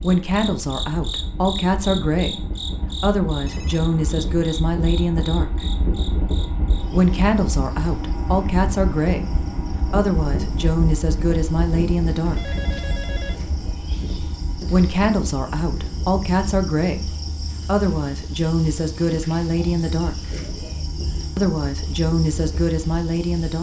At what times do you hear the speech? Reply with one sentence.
The speech can be heard from 0.0 to 5.7 s, from 6.9 to 12.6 s, from 14.7 to 20.1 s and from 21.4 to 23.5 s.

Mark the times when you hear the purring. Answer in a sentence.
The purring can't be heard in this clip.